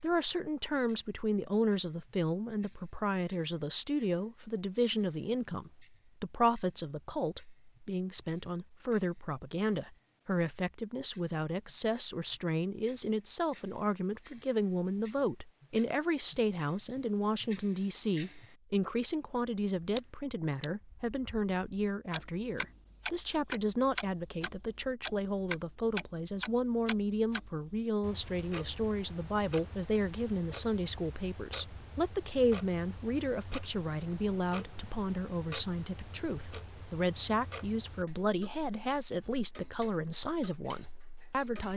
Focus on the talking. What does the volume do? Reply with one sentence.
The volume of the talking stays about the same.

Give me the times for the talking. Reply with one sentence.
The talking can be heard from 0.0 to 41.7 s.